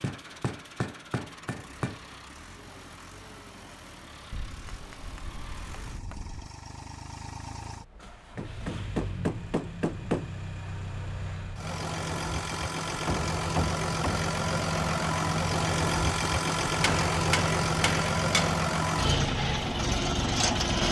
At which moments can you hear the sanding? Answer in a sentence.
You can't hear the sanding here.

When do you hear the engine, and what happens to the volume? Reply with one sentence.
You can hear the engine from 0.0 to 20.8 s, getting louder.